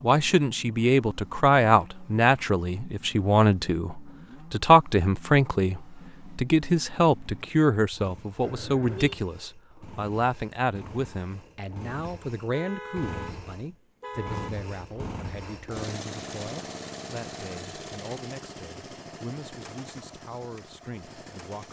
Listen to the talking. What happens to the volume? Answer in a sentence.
The volume of the talking goes down.